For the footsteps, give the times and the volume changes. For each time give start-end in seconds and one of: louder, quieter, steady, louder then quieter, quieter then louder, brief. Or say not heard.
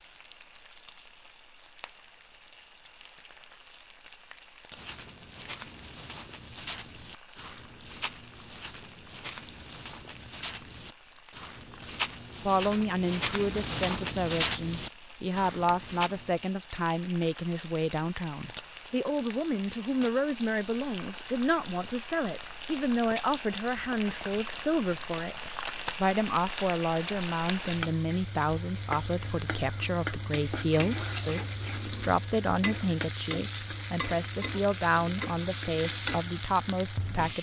4.7-16.4 louder.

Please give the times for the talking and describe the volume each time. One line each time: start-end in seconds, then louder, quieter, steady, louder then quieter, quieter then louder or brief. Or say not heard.
12.4-37.3 steady.